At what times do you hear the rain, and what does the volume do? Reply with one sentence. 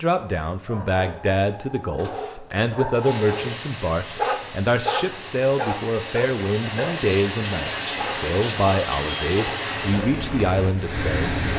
The rain can be heard from 3.0 to 11.5 s, getting louder.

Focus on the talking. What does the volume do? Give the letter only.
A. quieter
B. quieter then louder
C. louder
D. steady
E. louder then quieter
D.